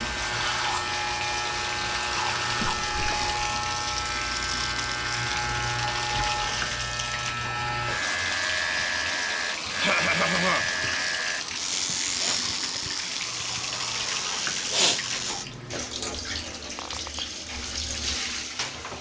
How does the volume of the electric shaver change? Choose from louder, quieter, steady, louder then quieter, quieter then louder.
steady.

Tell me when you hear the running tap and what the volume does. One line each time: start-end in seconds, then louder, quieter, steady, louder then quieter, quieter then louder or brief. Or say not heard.
0.0-18.9 steady.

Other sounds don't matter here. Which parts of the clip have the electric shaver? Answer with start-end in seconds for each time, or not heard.
0.0-15.4.